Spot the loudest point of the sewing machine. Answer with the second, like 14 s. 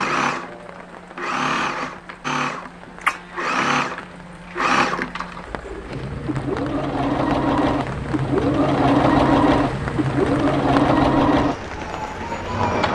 9 s.